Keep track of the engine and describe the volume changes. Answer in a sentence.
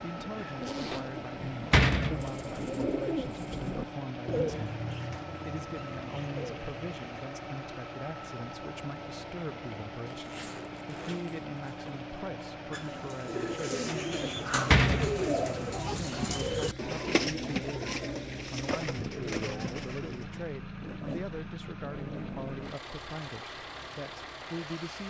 The loudness of the engine stays about the same.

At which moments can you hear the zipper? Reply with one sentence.
The zipper can be heard from 0.6 to 1.1 s, from 10.1 to 12.1 s and from 20.8 to 22.8 s.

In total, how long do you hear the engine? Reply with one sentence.
You can hear the engine for 25 seconds altogether.